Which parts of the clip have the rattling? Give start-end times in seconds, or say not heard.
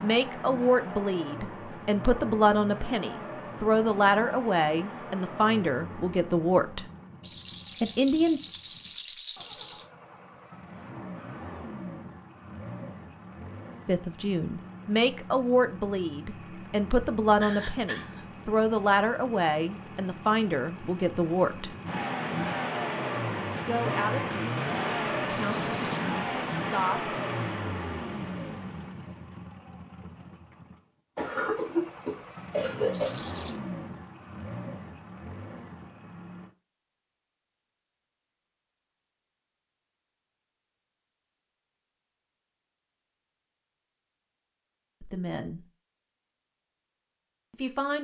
7.2-9.8, 25.5-26.1, 32.9-33.6.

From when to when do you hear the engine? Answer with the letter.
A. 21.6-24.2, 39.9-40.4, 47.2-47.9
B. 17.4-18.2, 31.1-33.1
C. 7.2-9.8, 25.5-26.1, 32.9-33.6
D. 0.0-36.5
D.